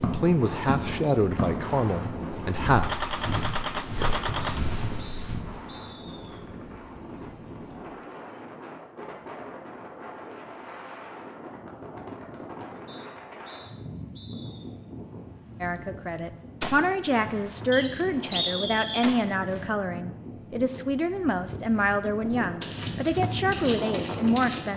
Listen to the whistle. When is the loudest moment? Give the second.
18 s.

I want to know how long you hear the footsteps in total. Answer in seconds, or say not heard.
8 s.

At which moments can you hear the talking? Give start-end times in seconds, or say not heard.
0.0-2.9, 15.6-24.7.